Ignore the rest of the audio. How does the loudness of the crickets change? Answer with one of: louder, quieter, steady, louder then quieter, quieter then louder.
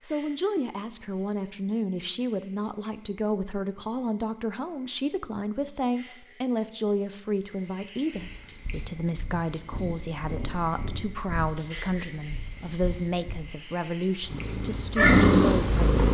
louder.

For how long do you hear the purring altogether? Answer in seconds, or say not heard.
8 s.